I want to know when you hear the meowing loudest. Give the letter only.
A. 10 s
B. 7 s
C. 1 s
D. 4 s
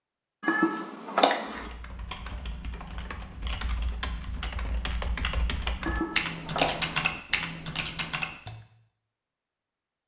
C.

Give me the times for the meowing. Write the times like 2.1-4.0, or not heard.
0.4-1.7, 5.8-7.0.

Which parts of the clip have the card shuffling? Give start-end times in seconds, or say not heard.
not heard.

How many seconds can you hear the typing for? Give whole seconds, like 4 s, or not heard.
7 s.